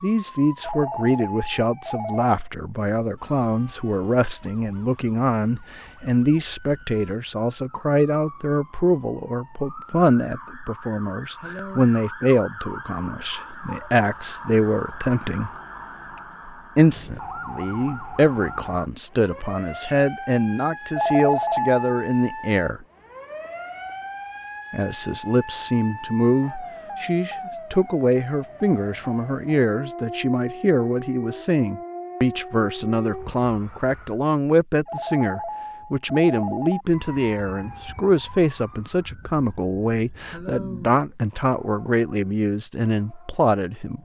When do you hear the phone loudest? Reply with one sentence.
The volume of the phone peaks at 21 seconds.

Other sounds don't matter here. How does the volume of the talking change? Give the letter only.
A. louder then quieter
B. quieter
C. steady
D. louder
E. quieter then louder
C.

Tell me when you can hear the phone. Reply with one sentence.
You can hear the phone from 0.6 to 2.3 s, from 20.9 to 21.9 s and from 34.9 to 36.9 s.